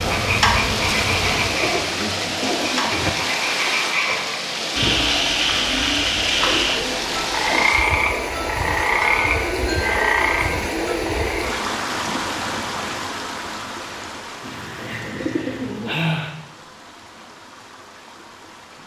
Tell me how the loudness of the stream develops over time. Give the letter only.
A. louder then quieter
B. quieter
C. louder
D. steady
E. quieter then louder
B.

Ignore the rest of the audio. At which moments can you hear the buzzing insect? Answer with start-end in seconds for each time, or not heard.
0.0-1.9.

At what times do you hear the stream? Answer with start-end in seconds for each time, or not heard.
0.0-18.8.